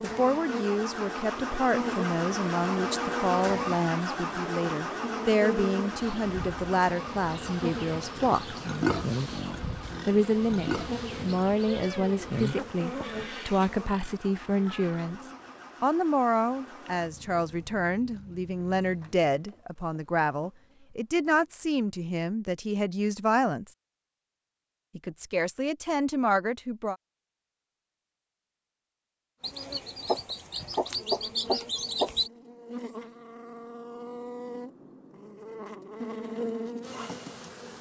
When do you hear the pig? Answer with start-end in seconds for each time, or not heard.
8.2-15.1.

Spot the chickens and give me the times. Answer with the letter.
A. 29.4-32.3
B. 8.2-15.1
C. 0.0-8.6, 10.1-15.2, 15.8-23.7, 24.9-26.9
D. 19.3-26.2
A.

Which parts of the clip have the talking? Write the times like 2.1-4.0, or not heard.
0.0-8.6, 10.1-15.2, 15.8-23.7, 24.9-26.9.